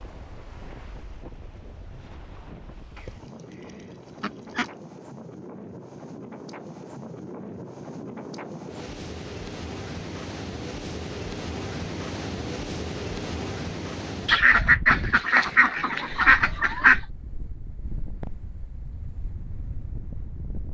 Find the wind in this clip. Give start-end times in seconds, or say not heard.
0.0-20.7.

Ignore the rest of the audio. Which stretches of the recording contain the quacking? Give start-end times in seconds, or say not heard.
3.0-4.7, 14.2-17.0.